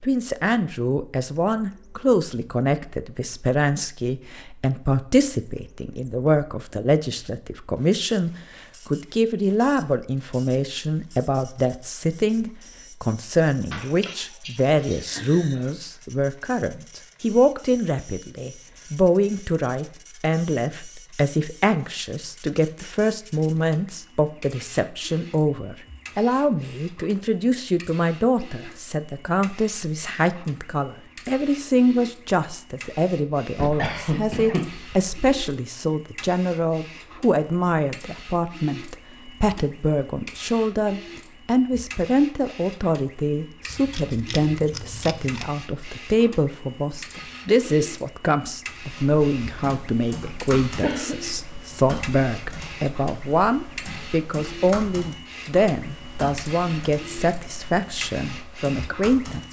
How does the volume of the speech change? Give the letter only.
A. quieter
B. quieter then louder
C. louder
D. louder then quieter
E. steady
E.